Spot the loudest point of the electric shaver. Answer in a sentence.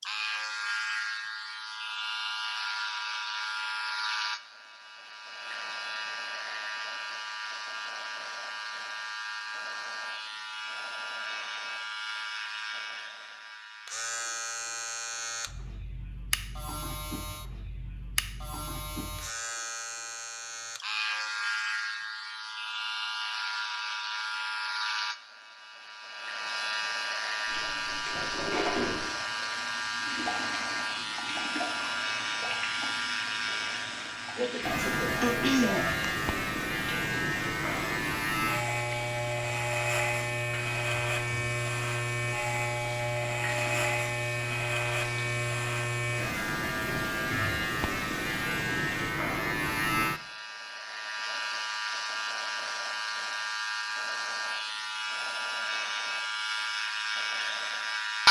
The loudest moment of the electric shaver is at 58 seconds.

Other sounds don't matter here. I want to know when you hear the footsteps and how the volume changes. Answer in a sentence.
The footsteps can't be heard in this clip.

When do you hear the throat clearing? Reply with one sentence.
You can hear the throat clearing from 34.4 to 36.0 s.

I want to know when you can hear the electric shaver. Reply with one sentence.
You can hear the electric shaver from 0.0 to 58.2 s.